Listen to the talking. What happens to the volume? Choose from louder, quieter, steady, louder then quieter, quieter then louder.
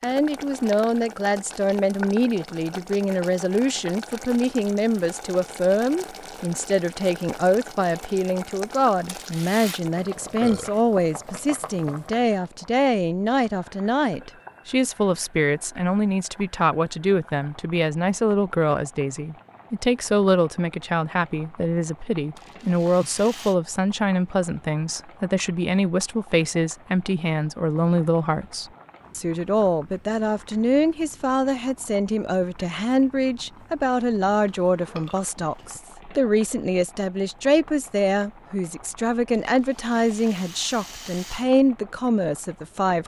steady.